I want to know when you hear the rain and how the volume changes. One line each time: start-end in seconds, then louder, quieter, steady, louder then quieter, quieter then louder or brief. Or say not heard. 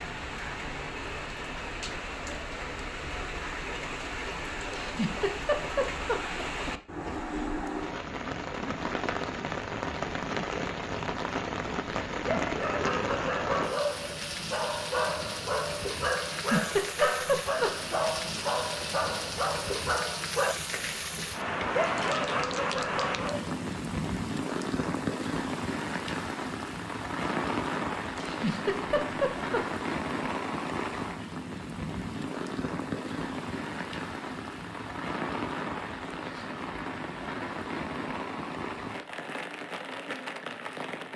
0.0-41.1 steady.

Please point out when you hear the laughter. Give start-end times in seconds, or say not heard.
4.8-6.7, 16.3-17.9, 28.1-29.6.